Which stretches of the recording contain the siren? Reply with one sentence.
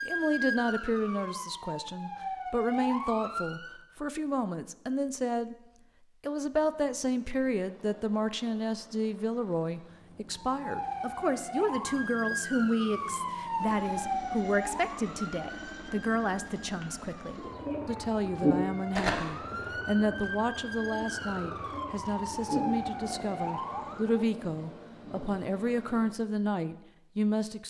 You can hear the siren from 0.0 to 3.8 s and from 10.5 to 24.2 s.